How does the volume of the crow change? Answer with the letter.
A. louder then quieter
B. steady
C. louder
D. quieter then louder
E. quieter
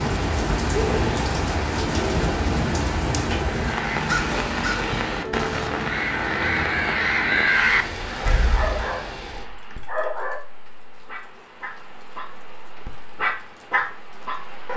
D.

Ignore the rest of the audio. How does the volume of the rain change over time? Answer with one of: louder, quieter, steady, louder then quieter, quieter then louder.
quieter.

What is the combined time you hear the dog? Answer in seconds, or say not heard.
6 s.